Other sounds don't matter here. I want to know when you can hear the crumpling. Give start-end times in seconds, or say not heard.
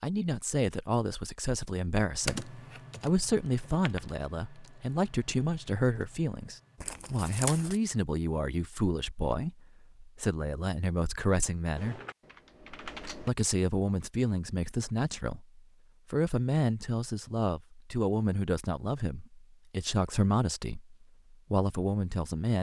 6.8-7.8.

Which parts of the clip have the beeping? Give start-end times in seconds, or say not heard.
not heard.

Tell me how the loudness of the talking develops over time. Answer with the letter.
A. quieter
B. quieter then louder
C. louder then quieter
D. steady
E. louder
D.